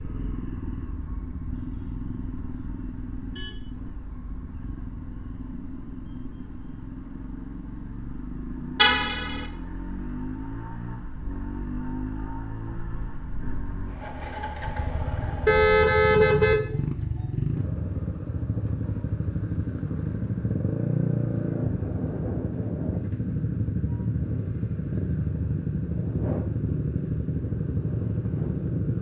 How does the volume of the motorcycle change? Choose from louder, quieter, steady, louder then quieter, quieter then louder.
louder.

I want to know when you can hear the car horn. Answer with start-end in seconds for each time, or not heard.
8.8-9.4, 15.4-16.6.